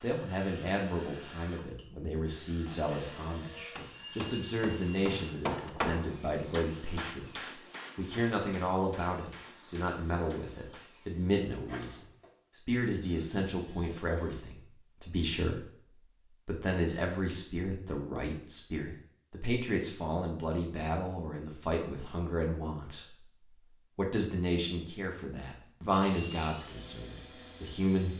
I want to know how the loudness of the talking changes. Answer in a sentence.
The volume of the talking stays about the same.